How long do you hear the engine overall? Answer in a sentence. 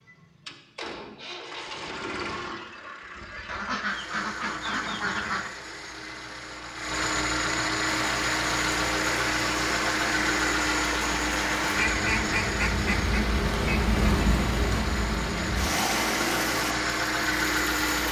The engine can be heard for 18 seconds in total.